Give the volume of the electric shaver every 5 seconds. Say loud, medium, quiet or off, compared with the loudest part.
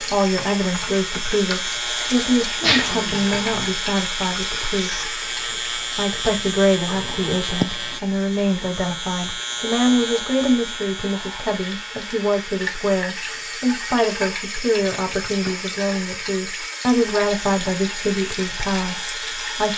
loud, loud, medium, medium.